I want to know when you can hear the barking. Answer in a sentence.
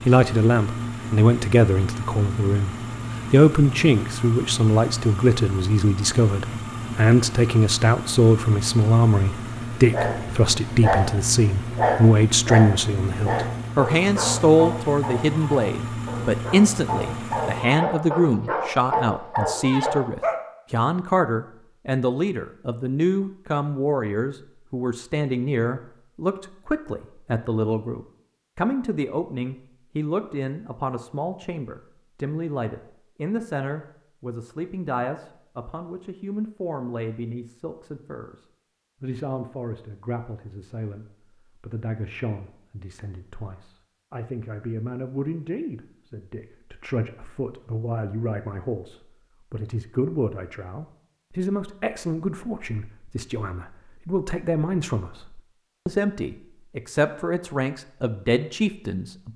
You can hear the barking from 9.9 to 20.4 s.